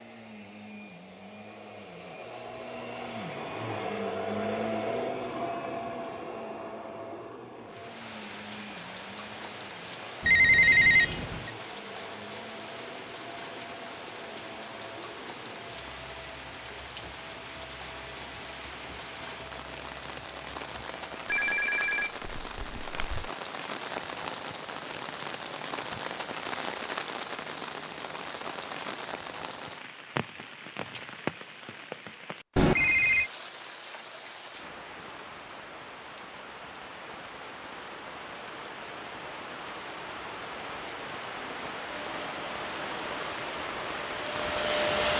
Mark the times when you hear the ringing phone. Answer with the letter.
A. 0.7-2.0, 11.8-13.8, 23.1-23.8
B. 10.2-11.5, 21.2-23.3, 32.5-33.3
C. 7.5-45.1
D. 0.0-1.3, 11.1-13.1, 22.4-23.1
B.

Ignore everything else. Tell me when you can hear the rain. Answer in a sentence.
The rain can be heard from 7.5 to 45.1 s.